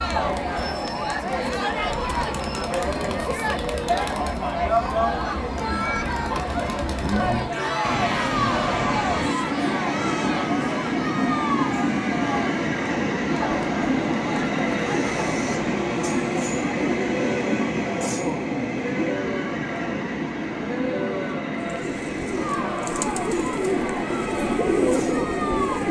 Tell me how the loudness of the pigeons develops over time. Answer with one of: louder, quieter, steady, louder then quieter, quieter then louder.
louder.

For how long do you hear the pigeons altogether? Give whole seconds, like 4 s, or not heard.
4 s.